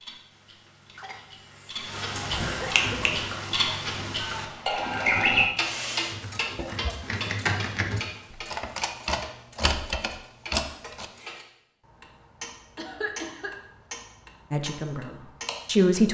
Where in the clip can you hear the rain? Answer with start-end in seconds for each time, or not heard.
not heard.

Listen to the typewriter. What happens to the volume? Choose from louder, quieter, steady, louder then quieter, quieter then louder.
louder.